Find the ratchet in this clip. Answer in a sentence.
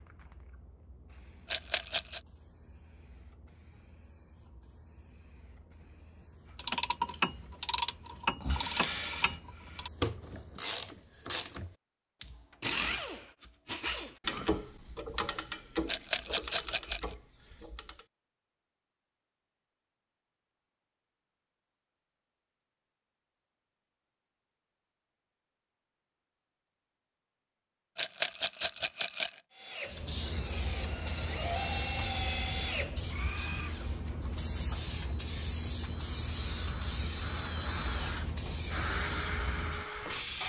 You can hear the ratchet from 6.5 to 18.1 s.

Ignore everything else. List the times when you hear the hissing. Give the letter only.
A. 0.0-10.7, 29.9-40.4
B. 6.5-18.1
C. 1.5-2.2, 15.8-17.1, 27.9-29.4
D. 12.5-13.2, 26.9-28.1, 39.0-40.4
A.